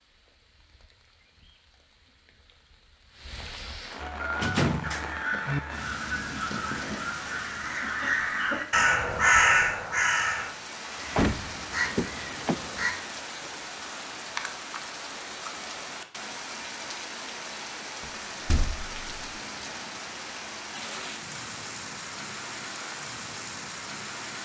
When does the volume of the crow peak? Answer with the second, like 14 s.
9 s.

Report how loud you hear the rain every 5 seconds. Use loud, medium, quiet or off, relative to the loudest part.
medium, loud, loud, loud, loud.